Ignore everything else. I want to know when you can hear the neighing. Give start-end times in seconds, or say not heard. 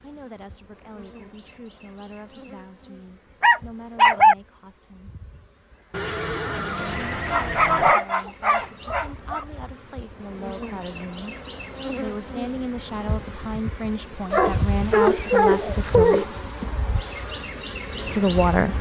5.9-8.0.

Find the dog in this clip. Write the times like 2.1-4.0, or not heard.
3.4-4.3, 7.3-9.4, 14.3-16.2.